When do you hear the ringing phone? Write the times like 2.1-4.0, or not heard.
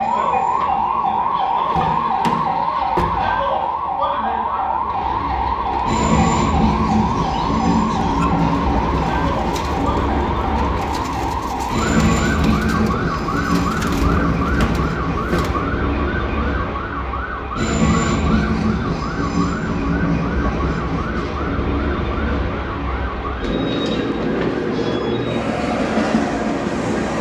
not heard.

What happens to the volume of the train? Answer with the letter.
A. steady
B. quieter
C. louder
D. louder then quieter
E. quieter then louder
C.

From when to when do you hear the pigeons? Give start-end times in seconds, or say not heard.
7.0-15.7.